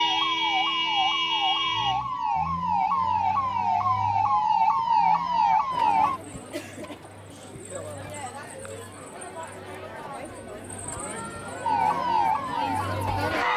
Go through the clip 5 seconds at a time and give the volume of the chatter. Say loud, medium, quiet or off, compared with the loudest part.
off, medium, loud.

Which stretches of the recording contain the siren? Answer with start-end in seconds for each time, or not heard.
0.0-6.2, 11.6-13.5.